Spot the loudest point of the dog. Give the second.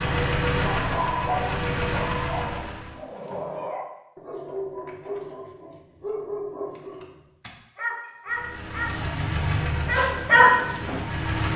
10 s.